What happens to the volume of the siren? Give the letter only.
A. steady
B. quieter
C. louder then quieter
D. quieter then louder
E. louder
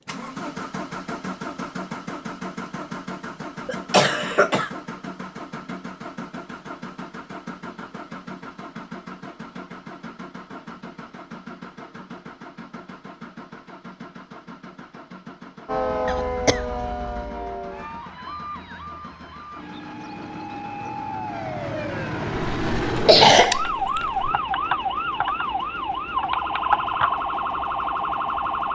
D.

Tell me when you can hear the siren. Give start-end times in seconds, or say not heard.
15.7-28.6.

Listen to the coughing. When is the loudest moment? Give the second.
23 s.